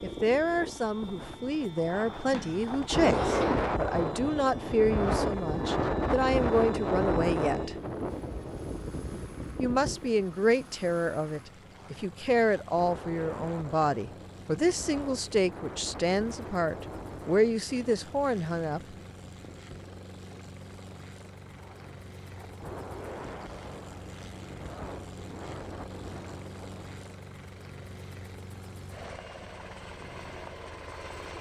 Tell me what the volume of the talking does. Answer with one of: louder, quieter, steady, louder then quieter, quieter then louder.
steady.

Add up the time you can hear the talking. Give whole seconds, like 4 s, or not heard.
17 s.